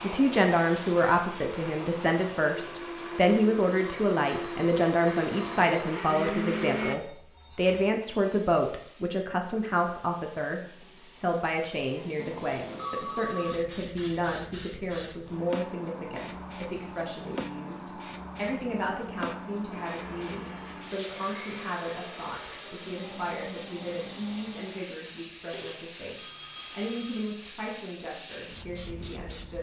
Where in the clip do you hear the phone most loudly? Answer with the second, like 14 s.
13 s.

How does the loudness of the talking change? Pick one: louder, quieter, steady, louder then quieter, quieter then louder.
quieter.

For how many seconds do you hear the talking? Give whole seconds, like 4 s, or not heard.
29 s.